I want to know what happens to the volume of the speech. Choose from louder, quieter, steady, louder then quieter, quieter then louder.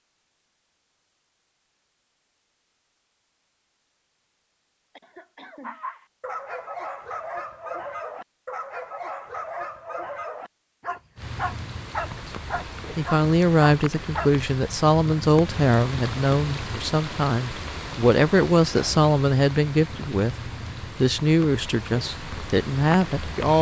steady.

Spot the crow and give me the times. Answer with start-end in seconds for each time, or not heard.
not heard.